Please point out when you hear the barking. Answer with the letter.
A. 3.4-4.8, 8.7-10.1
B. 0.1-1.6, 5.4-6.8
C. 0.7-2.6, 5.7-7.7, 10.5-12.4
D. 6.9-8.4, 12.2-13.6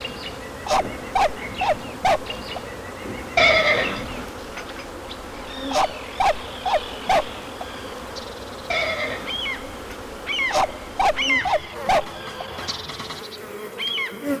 C.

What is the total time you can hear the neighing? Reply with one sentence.
The neighing can be heard for 3 seconds in total.